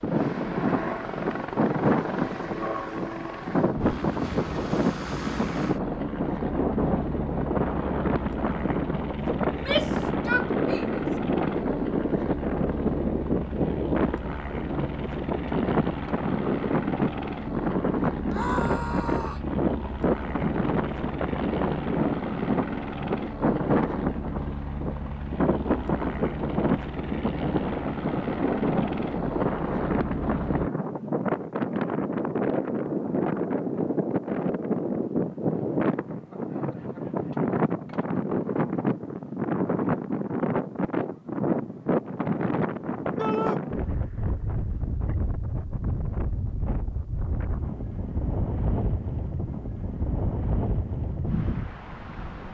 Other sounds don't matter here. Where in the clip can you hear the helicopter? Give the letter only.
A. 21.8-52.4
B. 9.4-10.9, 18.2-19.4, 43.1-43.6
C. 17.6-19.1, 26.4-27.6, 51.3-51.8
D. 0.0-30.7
D.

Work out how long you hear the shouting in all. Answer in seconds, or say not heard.
3 s.